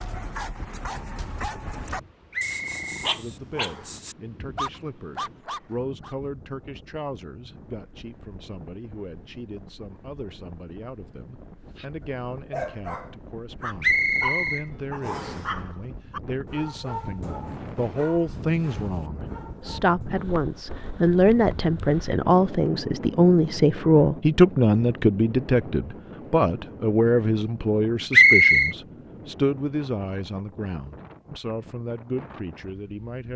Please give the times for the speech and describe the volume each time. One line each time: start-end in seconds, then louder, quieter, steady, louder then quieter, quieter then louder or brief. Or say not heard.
3.1-33.3 louder then quieter.